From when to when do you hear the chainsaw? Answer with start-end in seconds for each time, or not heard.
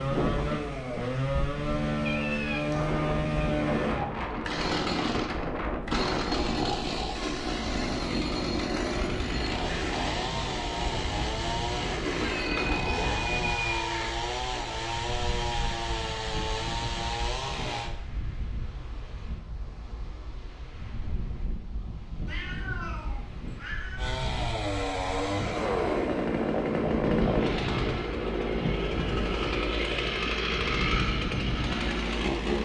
0.0-17.9, 23.9-32.6.